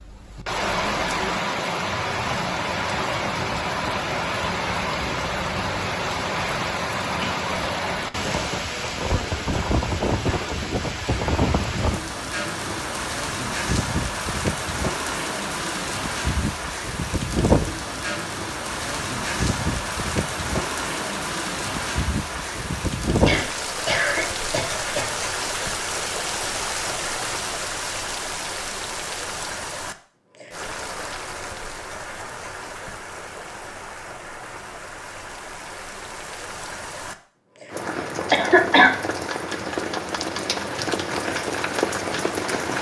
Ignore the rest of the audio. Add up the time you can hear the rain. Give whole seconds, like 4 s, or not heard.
43 s.